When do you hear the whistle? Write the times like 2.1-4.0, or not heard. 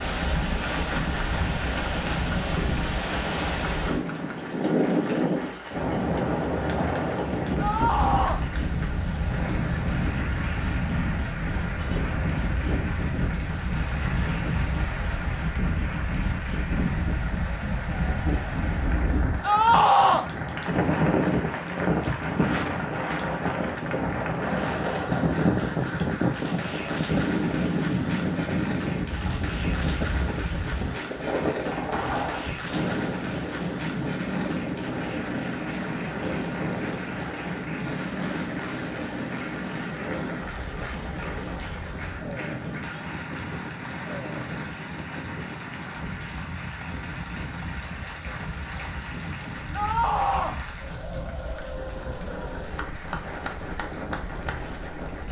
not heard.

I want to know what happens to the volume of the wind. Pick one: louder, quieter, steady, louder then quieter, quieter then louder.
quieter.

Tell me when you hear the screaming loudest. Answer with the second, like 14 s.
20 s.